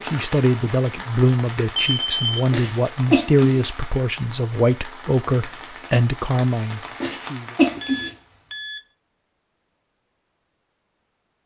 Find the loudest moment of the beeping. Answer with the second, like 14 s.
2 s.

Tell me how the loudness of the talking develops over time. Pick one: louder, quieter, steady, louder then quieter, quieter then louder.
steady.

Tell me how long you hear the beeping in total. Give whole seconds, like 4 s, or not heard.
2 s.